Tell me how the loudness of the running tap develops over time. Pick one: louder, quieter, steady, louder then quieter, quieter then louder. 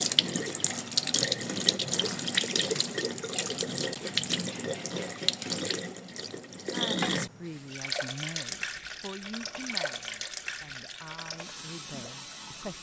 quieter.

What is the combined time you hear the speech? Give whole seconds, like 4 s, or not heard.
6 s.